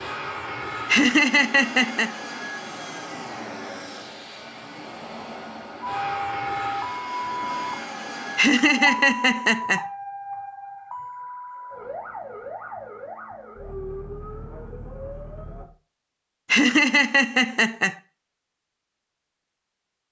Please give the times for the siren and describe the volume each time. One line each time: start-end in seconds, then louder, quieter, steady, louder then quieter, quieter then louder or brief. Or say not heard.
5.8-15.7 quieter.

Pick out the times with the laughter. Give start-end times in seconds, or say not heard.
0.8-2.1, 8.3-9.8, 16.5-17.9.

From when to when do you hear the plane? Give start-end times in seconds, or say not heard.
0.0-8.4.